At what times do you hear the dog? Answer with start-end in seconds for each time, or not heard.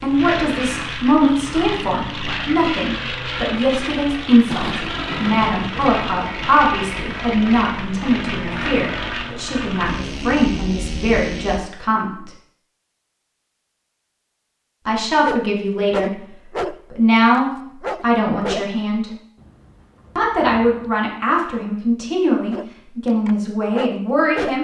15.2-18.8, 22.5-24.6.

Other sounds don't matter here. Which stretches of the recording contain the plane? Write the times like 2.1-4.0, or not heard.
0.0-11.6.